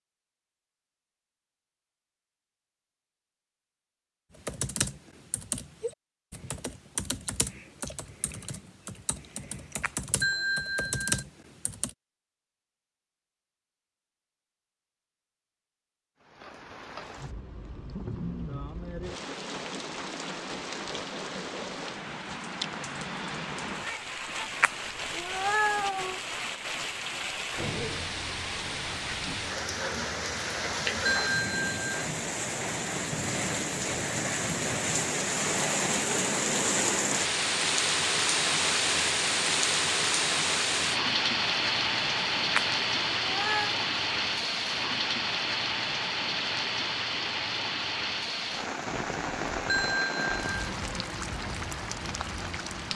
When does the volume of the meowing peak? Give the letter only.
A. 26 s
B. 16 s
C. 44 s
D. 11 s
A.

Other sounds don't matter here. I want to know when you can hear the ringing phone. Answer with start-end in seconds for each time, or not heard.
10.2-11.2, 31.1-31.9, 49.6-50.5.